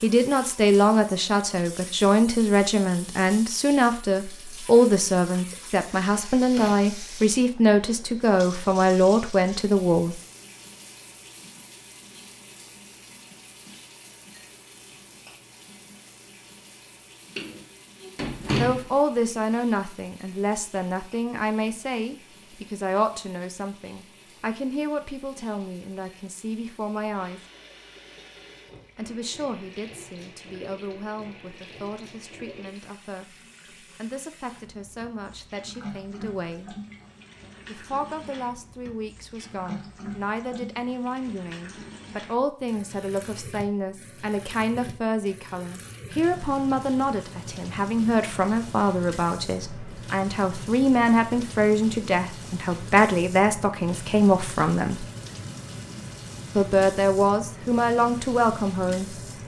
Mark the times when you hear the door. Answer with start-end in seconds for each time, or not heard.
17.4-18.9.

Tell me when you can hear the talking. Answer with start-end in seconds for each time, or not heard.
0.0-10.2, 18.6-27.4, 28.9-36.8, 37.6-55.0, 56.5-59.0.